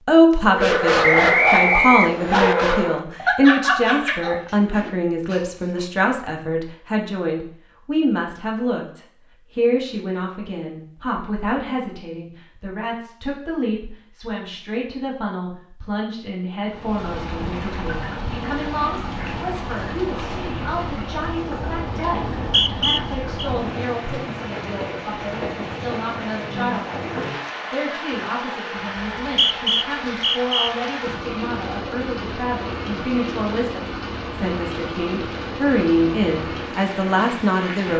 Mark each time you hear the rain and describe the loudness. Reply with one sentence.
You can hear the rain from 16.6 to 37.9 s, at a steady volume.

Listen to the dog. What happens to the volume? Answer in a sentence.
The loudness of the dog goes down.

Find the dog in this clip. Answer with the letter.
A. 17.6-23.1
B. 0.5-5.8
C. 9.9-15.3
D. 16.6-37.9
B.